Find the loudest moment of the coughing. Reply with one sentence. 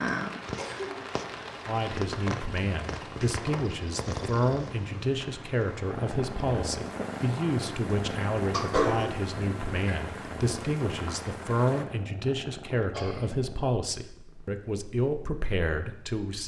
The loudest moment of the coughing is at 9 seconds.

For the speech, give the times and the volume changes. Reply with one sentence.
The speech can be heard from 1.6 to 16.4 s, at a steady volume.